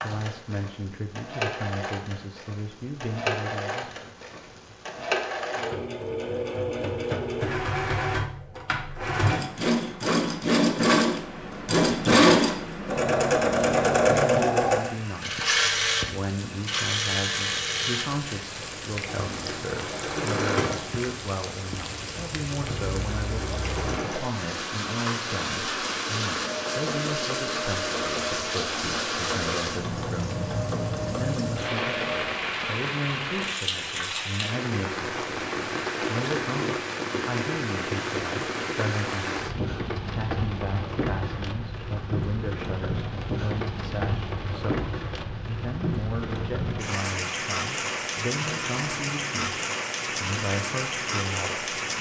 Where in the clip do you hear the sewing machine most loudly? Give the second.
12 s.